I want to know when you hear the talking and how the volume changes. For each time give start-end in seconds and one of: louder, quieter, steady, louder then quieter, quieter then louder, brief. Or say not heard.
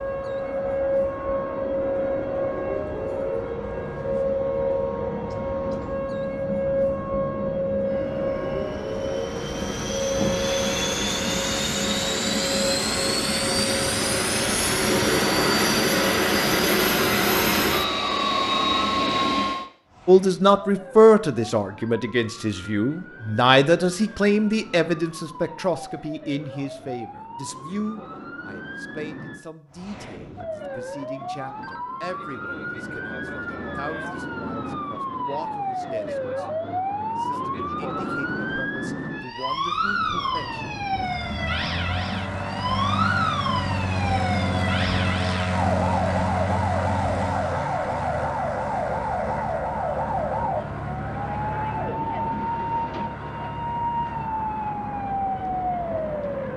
20.1-40.6 quieter.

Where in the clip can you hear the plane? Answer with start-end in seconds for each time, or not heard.
0.0-19.6, 39.7-56.5.